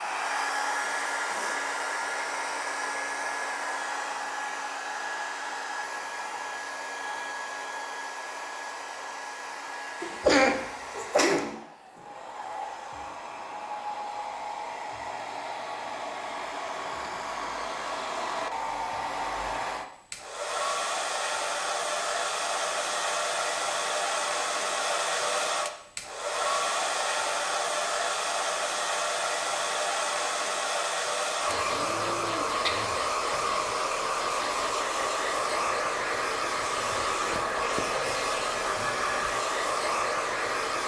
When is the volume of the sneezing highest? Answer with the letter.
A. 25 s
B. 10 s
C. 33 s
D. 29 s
B.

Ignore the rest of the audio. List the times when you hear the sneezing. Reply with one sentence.
You can hear the sneezing from 10.0 to 11.6 s and from 31.6 to 32.9 s.